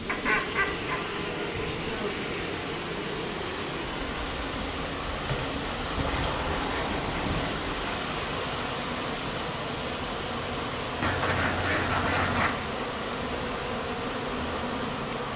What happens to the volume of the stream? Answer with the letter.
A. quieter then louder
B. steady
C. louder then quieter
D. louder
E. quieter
B.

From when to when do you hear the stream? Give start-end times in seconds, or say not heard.
0.0-15.3.